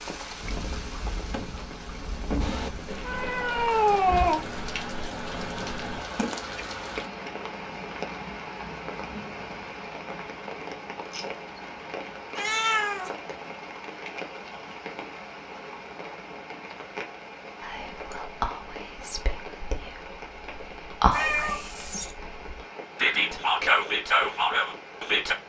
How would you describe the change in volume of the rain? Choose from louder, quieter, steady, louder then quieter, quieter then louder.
quieter.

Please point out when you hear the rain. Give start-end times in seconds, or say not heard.
0.0-25.4.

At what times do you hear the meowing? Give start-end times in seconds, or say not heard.
2.9-4.4, 12.3-13.1, 21.1-22.1.